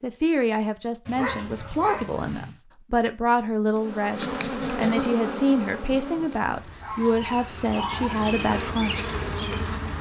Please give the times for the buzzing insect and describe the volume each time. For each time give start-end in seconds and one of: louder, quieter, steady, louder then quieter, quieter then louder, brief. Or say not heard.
3.7-9.9 quieter then louder.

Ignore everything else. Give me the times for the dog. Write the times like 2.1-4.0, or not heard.
1.1-2.5, 6.8-8.2.